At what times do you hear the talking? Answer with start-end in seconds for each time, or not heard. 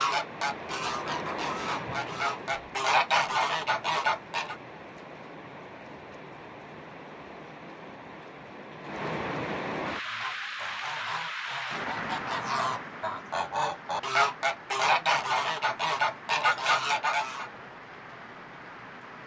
not heard.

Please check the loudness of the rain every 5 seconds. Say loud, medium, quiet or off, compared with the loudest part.
loud, loud, loud, medium.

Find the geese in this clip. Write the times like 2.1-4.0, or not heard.
0.0-4.5, 9.9-17.5.